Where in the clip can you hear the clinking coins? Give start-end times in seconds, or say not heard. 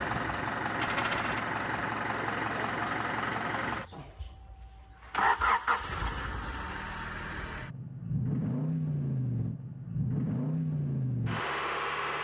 0.8-1.4.